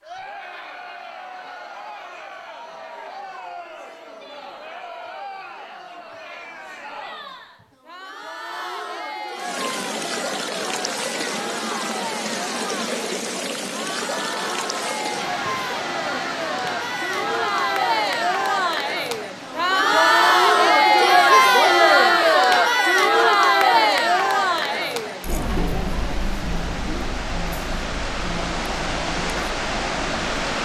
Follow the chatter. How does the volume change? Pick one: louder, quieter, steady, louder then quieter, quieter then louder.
louder then quieter.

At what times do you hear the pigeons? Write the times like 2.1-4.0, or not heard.
not heard.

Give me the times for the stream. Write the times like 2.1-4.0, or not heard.
9.3-30.5.